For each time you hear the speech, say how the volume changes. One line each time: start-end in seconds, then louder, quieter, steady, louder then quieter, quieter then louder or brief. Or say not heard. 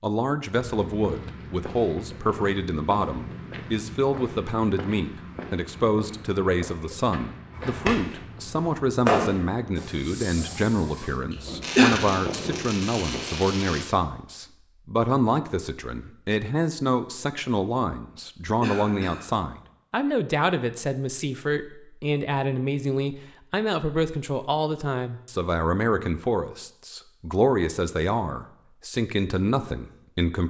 0.0-30.4 steady.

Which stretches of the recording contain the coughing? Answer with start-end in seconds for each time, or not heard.
11.3-11.9, 18.1-19.3.